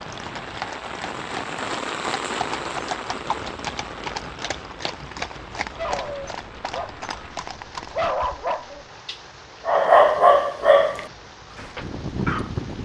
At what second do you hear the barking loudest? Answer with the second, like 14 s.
10 s.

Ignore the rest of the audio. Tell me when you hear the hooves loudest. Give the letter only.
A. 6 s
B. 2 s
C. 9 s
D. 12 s
D.